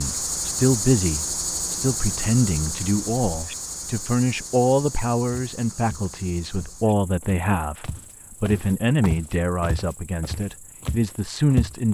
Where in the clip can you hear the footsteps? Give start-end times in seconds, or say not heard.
5.3-11.8.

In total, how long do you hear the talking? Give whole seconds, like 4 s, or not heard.
12 s.